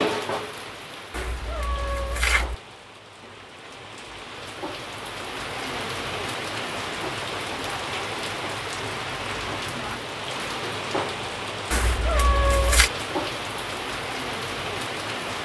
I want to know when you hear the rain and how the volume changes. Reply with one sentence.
The rain can be heard from 0.0 to 15.3 s, getting louder.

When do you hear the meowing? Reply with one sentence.
The meowing can be heard from 1.1 to 2.5 s and from 11.7 to 12.9 s.